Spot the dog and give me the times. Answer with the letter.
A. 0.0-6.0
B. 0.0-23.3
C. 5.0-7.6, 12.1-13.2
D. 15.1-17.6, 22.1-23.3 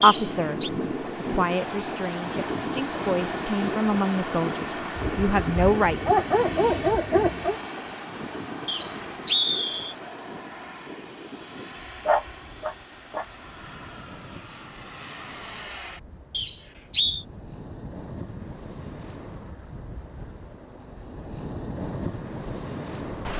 C.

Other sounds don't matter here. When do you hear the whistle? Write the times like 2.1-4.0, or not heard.
0.0-0.7, 8.7-9.9, 16.3-17.2.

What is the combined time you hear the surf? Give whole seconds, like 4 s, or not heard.
23 s.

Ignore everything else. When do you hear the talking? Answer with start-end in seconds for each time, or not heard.
0.0-6.0.